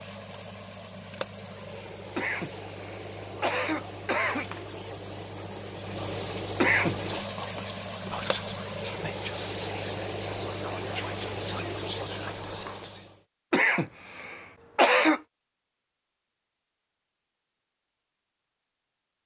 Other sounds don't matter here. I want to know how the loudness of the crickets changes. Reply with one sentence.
The loudness of the crickets goes up.